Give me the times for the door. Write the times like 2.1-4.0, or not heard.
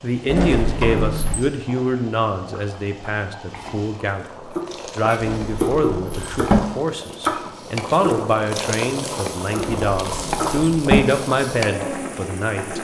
0.2-1.4, 5.2-6.6, 9.6-11.0.